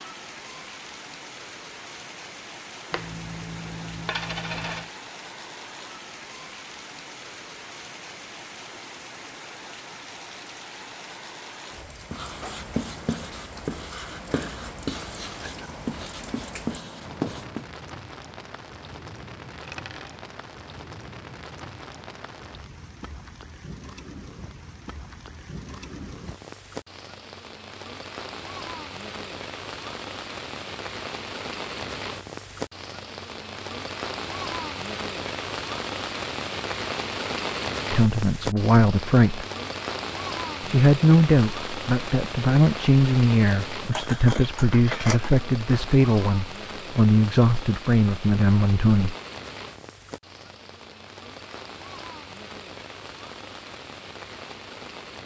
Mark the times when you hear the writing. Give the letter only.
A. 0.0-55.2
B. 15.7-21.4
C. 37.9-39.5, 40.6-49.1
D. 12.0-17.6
D.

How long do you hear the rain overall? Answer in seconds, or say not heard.
55 s.